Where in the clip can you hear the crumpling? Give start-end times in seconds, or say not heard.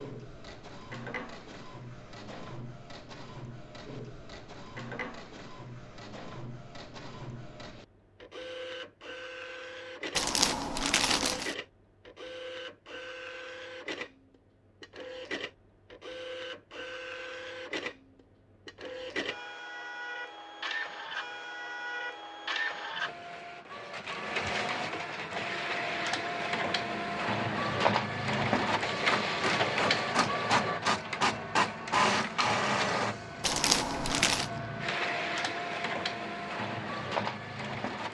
10.2-11.6, 33.4-34.5.